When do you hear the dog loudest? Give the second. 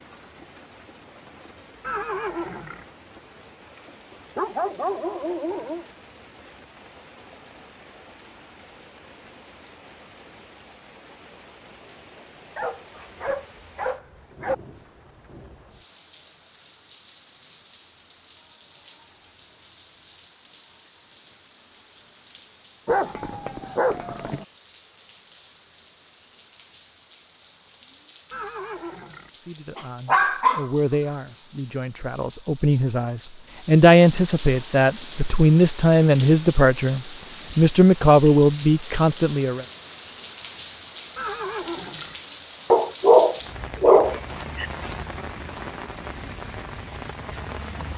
43 s.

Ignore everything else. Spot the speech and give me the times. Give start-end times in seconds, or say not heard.
29.4-39.6.